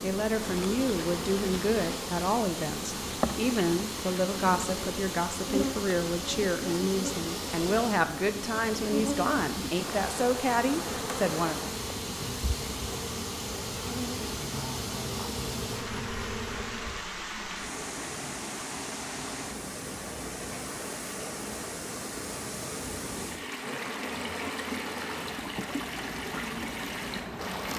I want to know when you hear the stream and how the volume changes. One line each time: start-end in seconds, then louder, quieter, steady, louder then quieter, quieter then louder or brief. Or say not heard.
0.0-27.7 steady.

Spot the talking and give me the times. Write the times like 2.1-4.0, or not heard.
0.0-11.7.